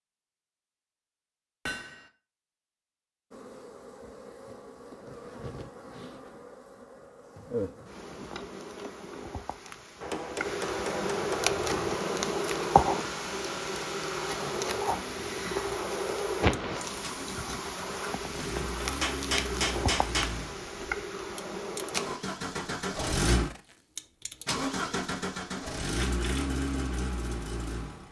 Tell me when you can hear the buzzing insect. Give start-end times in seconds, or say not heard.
3.3-22.2.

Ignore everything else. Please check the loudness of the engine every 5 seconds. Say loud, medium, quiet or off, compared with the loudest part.
off, off, medium, medium, loud, loud.